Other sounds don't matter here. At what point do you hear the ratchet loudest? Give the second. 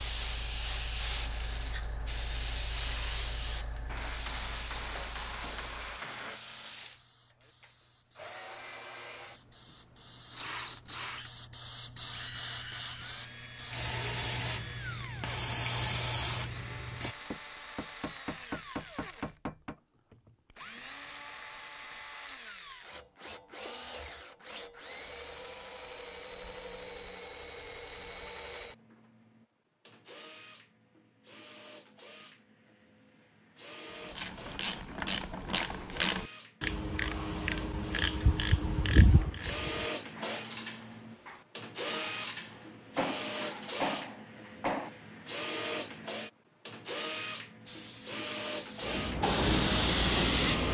39 s.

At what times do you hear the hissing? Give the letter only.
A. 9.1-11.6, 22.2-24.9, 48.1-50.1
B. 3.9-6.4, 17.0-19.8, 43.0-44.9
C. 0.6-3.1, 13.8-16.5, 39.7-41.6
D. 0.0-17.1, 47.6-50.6
D.